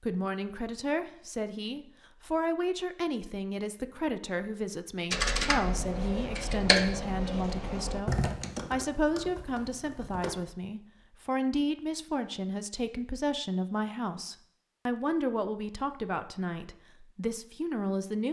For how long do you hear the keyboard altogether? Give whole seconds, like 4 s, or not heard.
5 s.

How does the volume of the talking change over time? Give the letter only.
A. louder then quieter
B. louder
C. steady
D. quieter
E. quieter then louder
C.